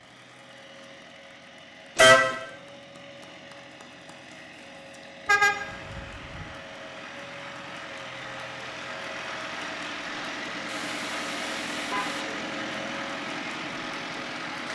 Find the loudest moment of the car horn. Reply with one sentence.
The volume of the car horn peaks at 2 seconds.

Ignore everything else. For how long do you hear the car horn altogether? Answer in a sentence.
You can hear the car horn for 3 seconds altogether.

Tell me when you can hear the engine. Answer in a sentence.
The engine can be heard from 0.0 to 14.7 s.